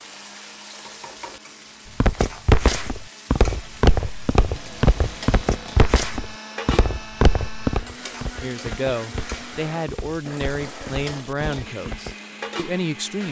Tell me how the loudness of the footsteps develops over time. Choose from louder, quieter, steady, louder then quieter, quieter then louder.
quieter.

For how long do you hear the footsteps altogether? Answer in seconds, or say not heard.
10 s.